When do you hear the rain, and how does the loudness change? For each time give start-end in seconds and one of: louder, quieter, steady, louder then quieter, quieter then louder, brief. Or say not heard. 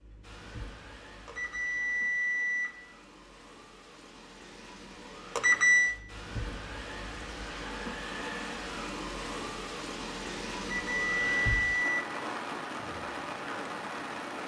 0.0-14.4 louder.